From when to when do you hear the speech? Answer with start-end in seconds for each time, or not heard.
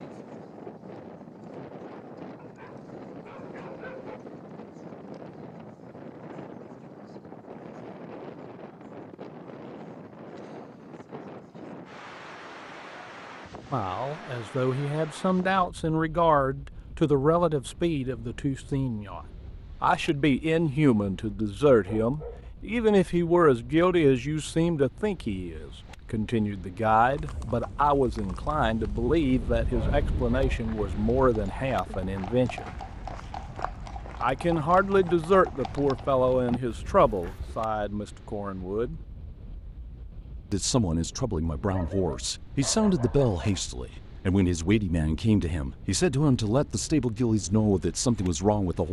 13.7-19.2, 19.8-32.8, 34.2-39.0, 40.5-48.8.